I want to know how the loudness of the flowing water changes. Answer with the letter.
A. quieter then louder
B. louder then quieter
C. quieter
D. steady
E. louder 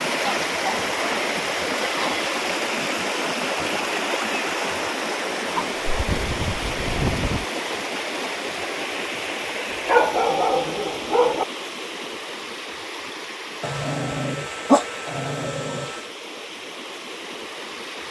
C.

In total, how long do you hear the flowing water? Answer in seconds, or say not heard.
18 s.